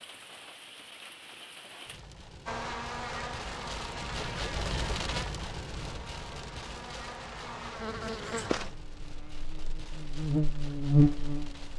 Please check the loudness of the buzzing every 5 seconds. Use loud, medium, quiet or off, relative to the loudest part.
quiet, quiet, loud.